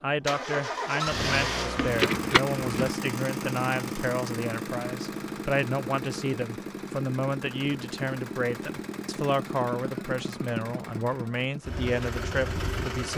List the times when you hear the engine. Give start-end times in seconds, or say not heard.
0.0-13.1.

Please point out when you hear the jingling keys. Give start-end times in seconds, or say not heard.
1.8-3.0.